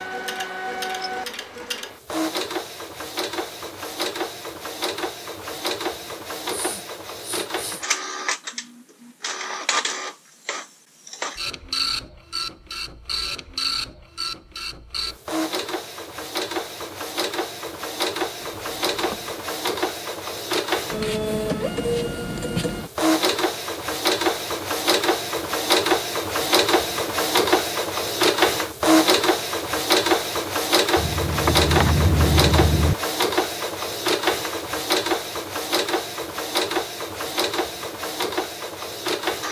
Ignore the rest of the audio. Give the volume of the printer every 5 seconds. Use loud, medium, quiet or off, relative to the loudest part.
medium, medium, medium, medium, loud, loud, loud, medium.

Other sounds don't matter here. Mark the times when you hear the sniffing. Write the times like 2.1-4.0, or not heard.
6.5-8.0.